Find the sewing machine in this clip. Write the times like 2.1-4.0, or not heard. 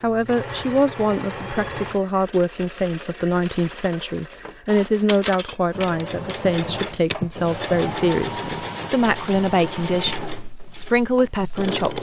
0.0-11.9.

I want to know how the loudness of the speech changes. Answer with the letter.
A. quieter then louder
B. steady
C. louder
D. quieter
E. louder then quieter
B.